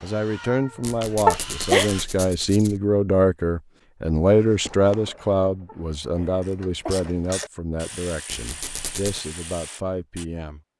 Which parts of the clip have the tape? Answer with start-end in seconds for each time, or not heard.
not heard.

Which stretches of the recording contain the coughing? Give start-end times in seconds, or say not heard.
1.2-1.9, 5.7-7.1.